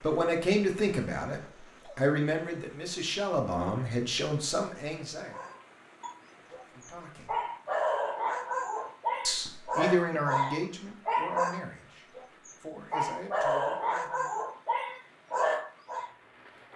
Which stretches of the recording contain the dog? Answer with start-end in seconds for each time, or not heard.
5.3-16.1.